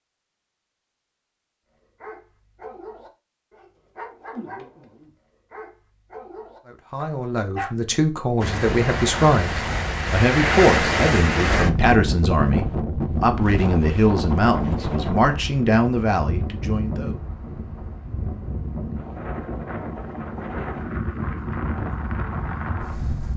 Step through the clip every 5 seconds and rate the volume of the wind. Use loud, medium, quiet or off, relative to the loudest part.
off, loud, loud, medium, medium.